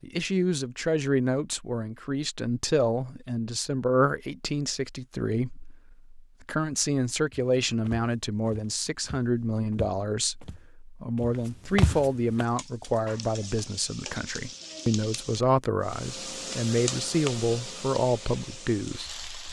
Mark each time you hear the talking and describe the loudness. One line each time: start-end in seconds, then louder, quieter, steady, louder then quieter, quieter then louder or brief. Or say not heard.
0.0-19.2 steady.